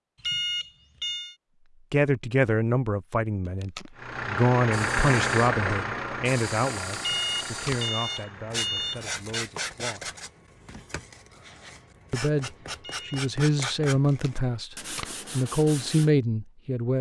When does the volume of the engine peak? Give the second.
5 s.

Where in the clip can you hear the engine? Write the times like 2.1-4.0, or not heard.
4.0-9.2.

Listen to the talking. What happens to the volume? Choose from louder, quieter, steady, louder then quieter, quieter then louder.
quieter then louder.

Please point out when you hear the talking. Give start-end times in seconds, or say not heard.
1.9-10.1, 12.1-16.9.